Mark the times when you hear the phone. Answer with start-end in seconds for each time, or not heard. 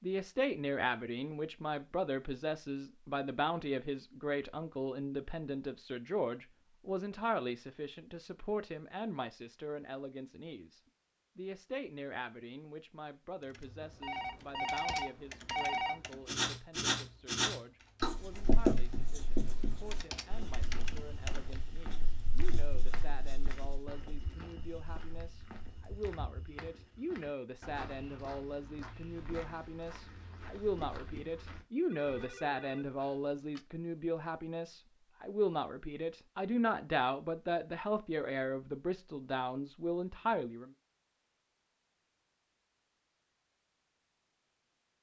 13.8-16.0, 31.9-33.6.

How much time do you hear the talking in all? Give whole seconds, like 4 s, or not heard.
41 s.